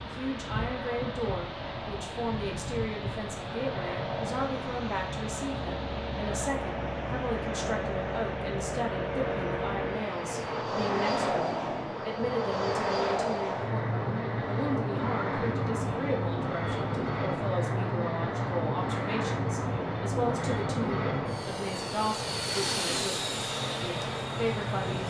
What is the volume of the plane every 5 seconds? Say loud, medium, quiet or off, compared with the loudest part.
medium, loud, loud, loud, loud.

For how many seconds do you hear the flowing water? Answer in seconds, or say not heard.
25 s.